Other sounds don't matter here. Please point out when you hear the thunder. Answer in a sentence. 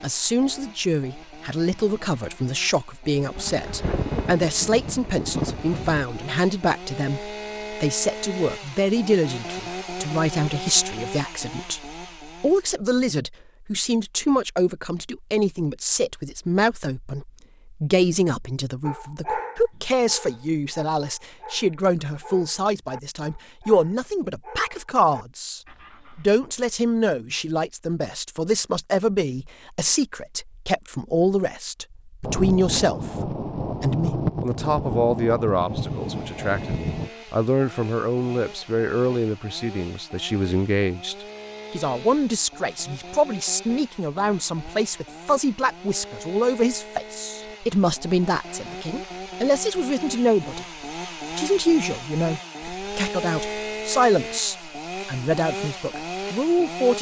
The thunder can be heard from 3.4 to 6.0 s and from 32.2 to 37.1 s.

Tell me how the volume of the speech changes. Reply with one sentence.
The volume of the speech stays about the same.